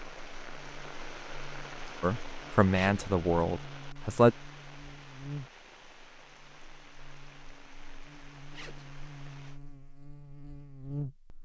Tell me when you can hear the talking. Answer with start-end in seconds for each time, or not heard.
2.0-4.3.